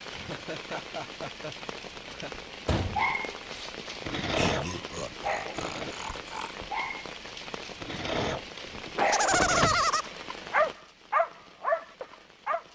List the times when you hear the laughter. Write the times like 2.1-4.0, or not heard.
0.1-2.4, 4.3-6.5, 8.9-10.1.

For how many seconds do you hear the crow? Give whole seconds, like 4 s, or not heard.
not heard.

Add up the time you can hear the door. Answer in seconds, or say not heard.
2 s.